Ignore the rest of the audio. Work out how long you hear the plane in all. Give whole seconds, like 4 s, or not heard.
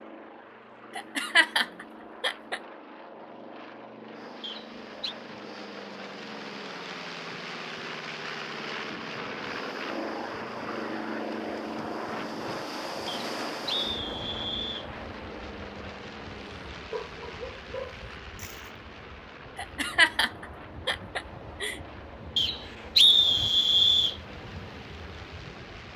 26 s.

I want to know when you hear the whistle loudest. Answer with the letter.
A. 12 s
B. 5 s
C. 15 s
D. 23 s
D.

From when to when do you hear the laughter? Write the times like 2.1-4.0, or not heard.
0.9-2.6, 19.6-21.8.